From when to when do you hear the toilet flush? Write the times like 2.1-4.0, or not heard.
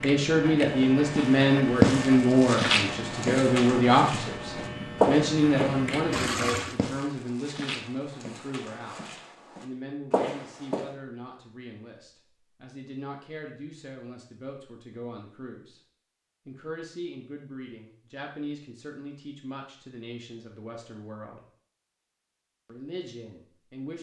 6.1-6.8.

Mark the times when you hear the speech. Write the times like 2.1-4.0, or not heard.
0.0-15.8, 16.4-21.4, 22.6-23.9.